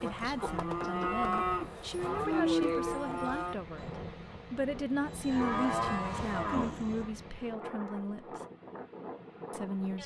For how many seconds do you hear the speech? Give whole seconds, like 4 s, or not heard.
8 s.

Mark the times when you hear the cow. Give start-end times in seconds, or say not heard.
0.0-3.9, 5.0-7.1.